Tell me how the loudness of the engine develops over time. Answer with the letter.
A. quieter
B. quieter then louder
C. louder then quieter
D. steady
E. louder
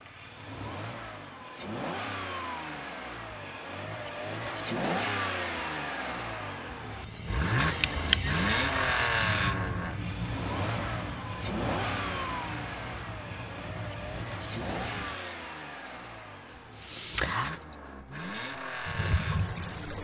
C.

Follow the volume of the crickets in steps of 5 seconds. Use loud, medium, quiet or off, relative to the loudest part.
off, loud, medium, loud.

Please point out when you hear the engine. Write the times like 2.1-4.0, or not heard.
0.0-19.9.